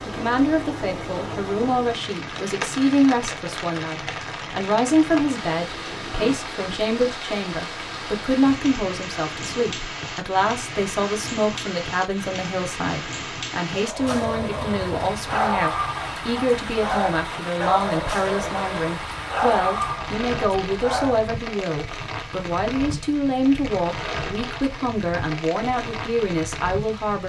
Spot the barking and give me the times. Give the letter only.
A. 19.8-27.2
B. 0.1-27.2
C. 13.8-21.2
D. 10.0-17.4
C.